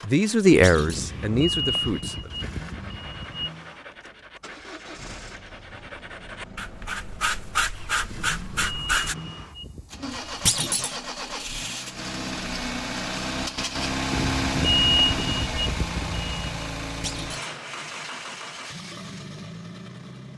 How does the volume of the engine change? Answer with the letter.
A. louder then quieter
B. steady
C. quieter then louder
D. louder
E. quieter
A.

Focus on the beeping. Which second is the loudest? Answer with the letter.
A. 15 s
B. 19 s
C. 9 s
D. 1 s
A.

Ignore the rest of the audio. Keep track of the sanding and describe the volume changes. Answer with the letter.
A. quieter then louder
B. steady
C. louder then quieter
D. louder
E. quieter
D.